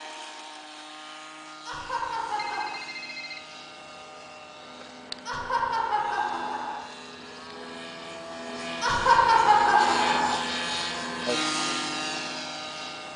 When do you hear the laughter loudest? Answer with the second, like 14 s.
9 s.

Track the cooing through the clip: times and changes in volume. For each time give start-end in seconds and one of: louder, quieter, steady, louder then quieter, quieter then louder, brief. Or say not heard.
not heard.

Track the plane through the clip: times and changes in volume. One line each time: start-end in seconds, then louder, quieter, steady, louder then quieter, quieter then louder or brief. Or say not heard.
0.0-13.1 louder.